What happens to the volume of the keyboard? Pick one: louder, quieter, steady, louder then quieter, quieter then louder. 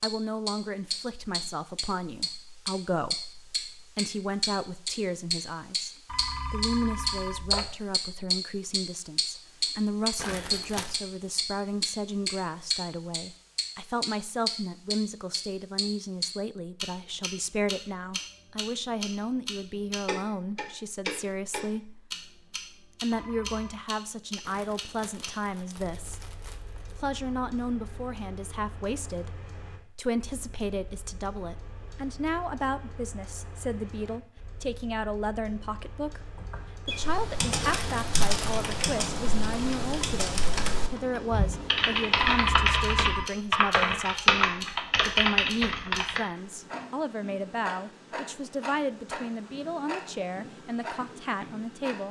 louder.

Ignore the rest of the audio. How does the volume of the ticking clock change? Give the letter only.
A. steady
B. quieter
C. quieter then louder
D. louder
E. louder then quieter
C.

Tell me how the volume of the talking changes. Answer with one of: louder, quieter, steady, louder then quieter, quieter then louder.
steady.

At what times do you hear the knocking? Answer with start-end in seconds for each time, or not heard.
not heard.